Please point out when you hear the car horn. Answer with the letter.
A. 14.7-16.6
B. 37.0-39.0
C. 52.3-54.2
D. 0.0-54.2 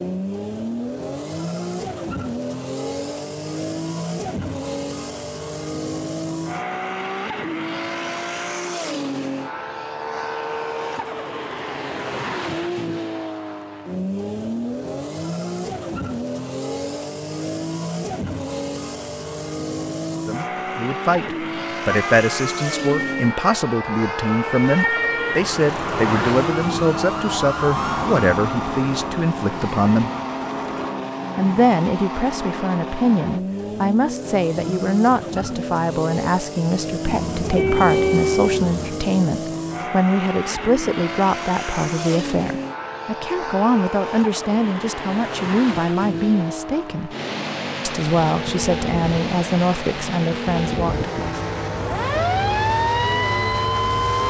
B.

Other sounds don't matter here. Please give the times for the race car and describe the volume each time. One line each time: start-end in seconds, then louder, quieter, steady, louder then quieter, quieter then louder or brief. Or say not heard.
0.0-54.2 steady.